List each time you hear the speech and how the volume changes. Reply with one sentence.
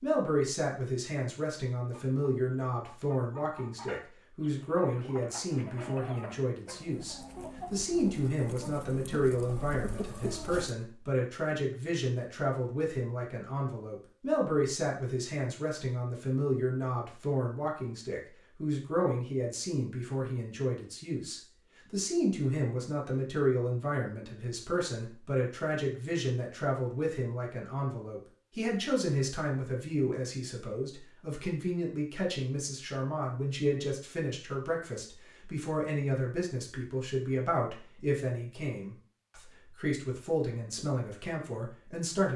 You can hear the speech from 0.0 to 42.3 s, at a steady volume.